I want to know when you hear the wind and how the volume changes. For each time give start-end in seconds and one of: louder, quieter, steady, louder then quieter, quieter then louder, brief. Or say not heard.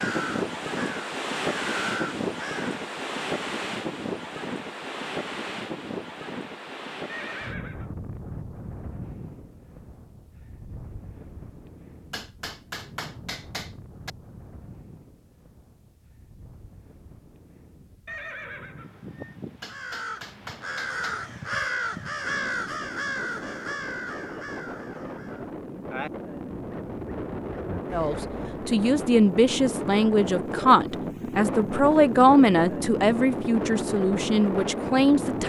0.0-35.4 quieter then louder.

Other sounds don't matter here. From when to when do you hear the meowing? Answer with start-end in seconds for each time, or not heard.
not heard.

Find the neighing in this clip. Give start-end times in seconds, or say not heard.
7.0-7.9, 18.1-19.4.